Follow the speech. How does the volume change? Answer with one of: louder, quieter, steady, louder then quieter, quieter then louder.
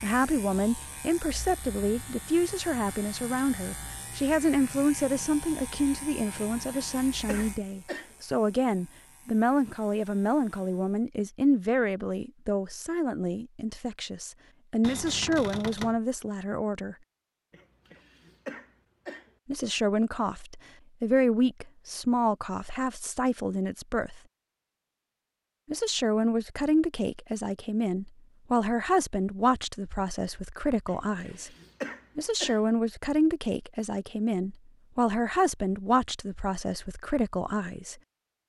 steady.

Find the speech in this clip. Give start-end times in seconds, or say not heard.
0.0-16.9, 19.4-24.2, 25.7-31.5, 32.1-38.0.